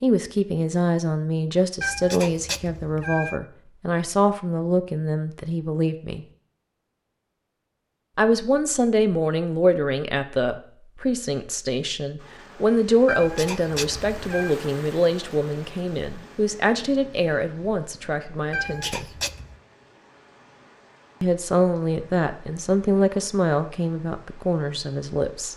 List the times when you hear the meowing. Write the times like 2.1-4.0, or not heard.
1.8-3.4, 13.1-14.6, 18.5-19.6.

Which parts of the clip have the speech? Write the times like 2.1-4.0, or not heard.
0.0-6.2, 8.2-19.1, 21.2-25.5.